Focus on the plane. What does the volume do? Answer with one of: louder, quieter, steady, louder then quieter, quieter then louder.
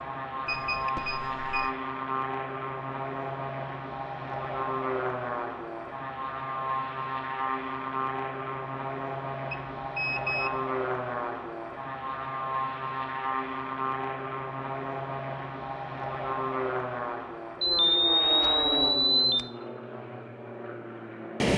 steady.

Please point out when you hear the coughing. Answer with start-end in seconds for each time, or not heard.
not heard.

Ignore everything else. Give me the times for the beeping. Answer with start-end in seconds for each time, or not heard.
0.5-1.7, 9.5-10.6, 17.6-19.4.